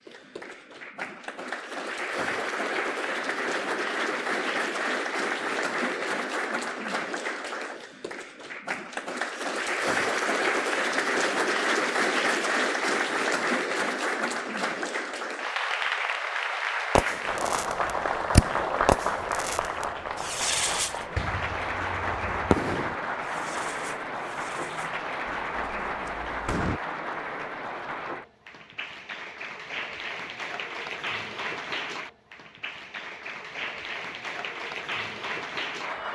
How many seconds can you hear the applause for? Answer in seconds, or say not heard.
36 s.